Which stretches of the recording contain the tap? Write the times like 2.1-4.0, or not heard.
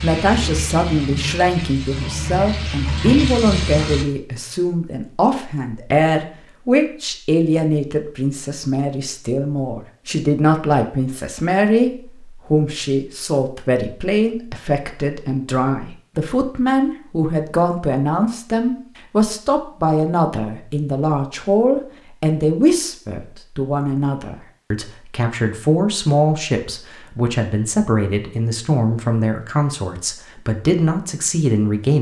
0.0-4.0.